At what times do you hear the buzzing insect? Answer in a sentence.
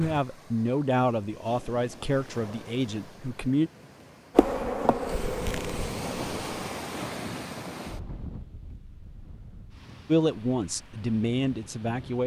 The buzzing insect can be heard from 4.3 to 6.8 s.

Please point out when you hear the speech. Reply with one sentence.
The speech can be heard from 0.0 to 3.7 s and from 10.1 to 12.2 s.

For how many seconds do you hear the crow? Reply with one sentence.
You can't hear the crow here.